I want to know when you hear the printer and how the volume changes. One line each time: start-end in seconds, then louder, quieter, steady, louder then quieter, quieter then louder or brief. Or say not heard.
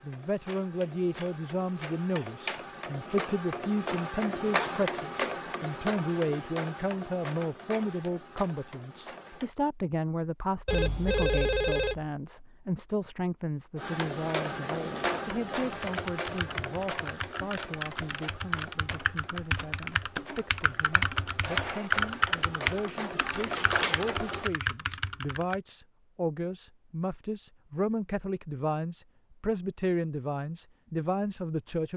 0.0-9.5 louder then quieter
13.8-24.5 quieter then louder.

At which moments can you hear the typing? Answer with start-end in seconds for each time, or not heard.
15.7-25.6.